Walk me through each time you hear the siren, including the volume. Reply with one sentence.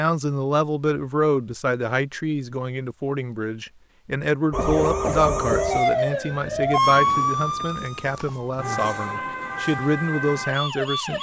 You can hear the siren from 4.5 to 11.1 s, getting quieter.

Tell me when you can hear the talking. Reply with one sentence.
The talking can be heard from 0.0 to 11.1 s.